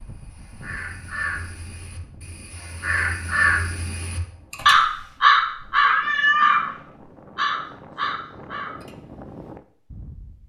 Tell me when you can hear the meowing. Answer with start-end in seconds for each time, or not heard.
5.8-6.8.